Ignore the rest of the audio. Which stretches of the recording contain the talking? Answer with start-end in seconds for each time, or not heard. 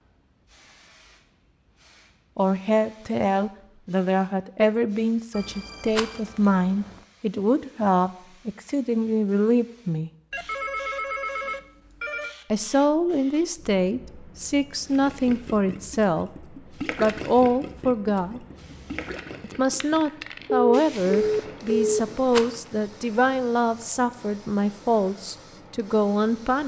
2.4-10.1, 12.5-18.4, 19.4-26.6.